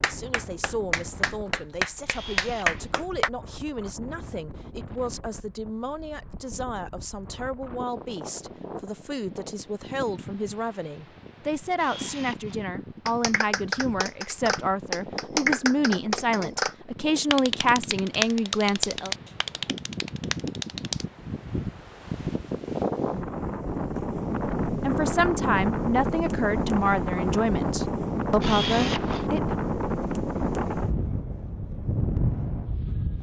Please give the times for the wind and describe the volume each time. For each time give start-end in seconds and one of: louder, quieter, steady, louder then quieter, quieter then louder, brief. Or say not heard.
0.0-33.1 louder.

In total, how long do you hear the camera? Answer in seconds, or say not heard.
3 s.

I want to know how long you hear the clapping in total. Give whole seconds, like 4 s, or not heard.
11 s.